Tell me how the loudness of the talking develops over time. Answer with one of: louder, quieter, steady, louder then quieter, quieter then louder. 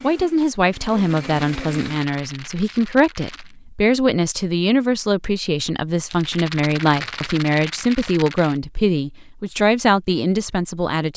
steady.